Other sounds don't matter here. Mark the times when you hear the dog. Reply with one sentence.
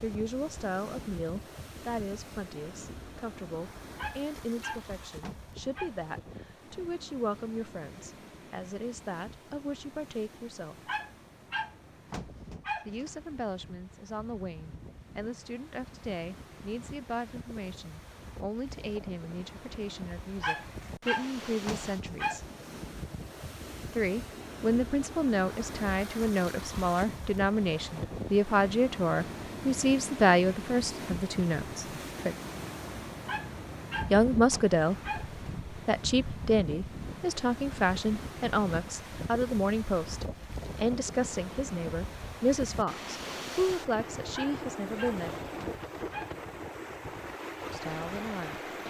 The dog can be heard from 4.0 to 5.9 s, from 10.8 to 13.2 s, from 20.4 to 22.4 s, from 33.2 to 35.4 s and from 44.3 to 46.5 s.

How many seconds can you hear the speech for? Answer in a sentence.
The speech can be heard for 40 seconds in total.